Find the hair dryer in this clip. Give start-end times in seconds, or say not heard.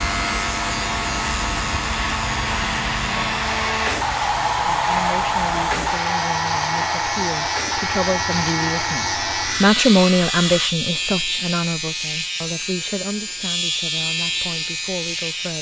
0.0-10.8.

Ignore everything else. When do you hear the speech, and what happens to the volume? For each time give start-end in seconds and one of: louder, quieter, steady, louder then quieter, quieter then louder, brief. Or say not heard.
4.8-15.5 louder then quieter.